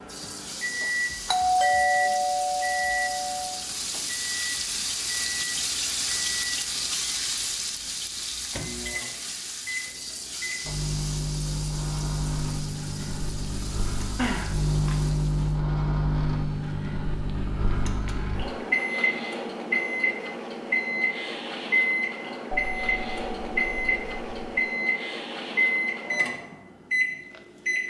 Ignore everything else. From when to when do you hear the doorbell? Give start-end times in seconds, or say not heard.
1.2-3.5, 14.2-14.9, 22.5-24.6.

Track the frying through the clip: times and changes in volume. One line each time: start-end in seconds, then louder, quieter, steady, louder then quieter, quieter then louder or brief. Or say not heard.
0.0-15.6 louder then quieter.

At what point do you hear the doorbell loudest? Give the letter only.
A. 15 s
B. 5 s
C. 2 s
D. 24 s
C.